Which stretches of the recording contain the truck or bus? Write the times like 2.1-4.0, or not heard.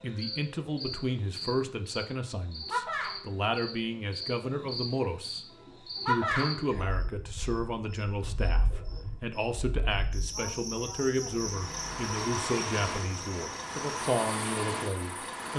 11.2-15.5.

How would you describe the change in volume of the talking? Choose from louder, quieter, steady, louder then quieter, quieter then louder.
steady.